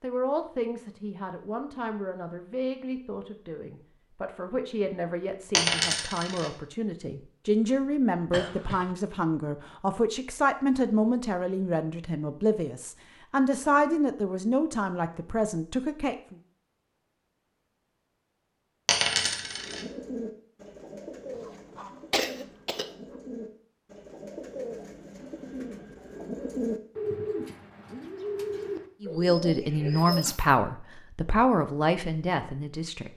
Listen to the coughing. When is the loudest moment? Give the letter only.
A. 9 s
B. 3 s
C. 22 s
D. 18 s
C.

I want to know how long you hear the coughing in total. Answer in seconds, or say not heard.
2 s.